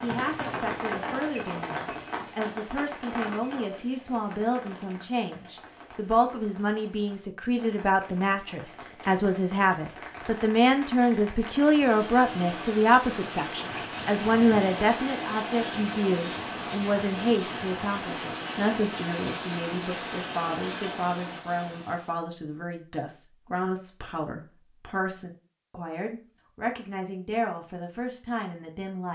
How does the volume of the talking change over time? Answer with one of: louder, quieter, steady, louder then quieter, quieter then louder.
louder then quieter.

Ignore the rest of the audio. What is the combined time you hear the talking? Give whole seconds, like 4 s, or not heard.
29 s.